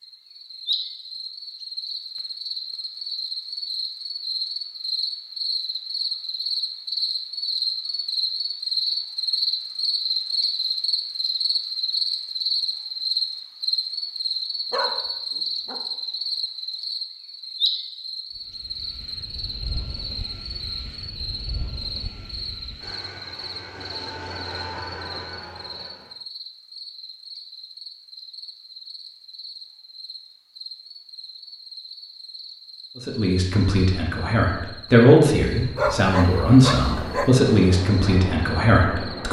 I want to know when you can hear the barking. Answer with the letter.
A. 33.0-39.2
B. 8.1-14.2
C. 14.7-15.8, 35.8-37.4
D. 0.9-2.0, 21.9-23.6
C.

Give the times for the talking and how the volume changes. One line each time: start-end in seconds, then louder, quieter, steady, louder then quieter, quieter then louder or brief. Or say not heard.
33.0-39.2 louder then quieter.